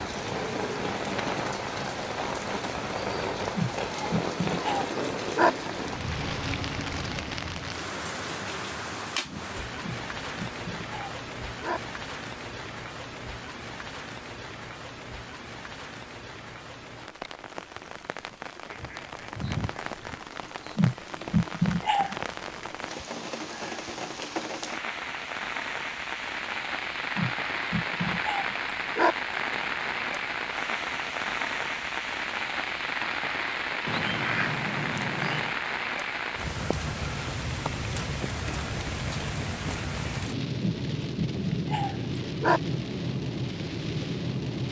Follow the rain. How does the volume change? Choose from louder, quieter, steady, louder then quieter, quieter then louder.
quieter then louder.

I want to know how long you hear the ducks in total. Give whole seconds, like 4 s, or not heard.
3 s.